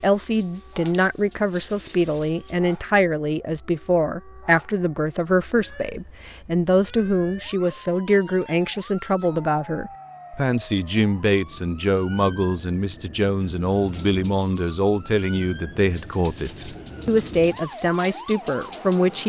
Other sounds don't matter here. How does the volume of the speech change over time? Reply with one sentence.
The loudness of the speech stays about the same.